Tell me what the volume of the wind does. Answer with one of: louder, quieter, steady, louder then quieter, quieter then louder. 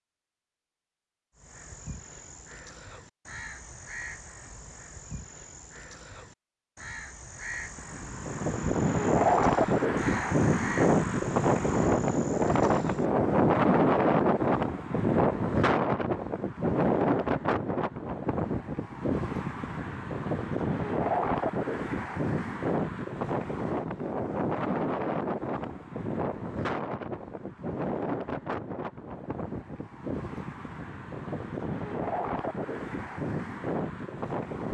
quieter.